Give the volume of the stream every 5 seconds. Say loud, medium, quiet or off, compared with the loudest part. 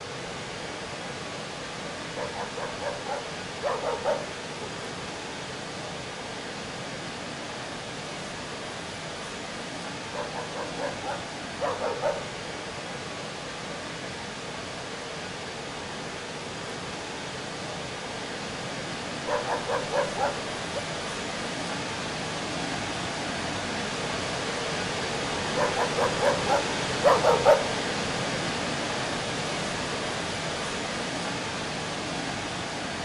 medium, medium, medium, medium, loud, loud, loud.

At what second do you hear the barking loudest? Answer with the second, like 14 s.
27 s.